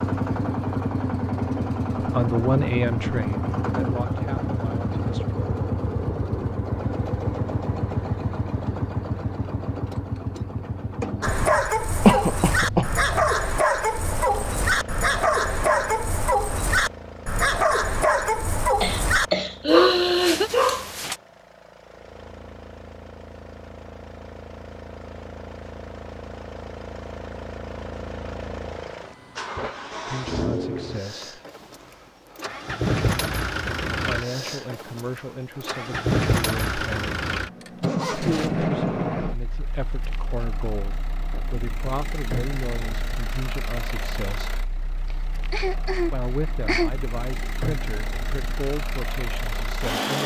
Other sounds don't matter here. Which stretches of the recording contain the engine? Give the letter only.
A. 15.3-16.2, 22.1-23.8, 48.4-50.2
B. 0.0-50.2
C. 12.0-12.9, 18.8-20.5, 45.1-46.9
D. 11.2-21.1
B.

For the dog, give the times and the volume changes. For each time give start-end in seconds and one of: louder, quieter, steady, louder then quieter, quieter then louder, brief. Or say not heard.
11.2-21.1 steady.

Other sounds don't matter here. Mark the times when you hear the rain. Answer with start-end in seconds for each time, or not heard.
not heard.